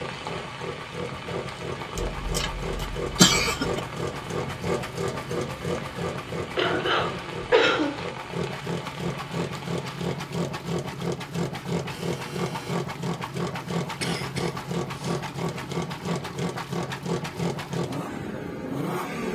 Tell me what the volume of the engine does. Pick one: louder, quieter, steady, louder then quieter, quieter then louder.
steady.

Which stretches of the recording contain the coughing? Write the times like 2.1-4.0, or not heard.
1.9-3.8, 6.5-8.1, 14.0-15.2.